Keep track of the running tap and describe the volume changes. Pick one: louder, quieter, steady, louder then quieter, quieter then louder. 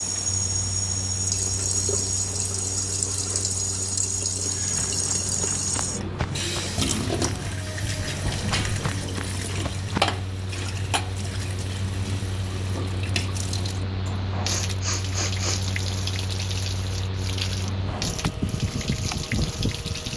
quieter.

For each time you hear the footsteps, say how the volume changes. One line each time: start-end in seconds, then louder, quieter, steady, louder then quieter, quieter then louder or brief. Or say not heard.
4.4-10.2 steady.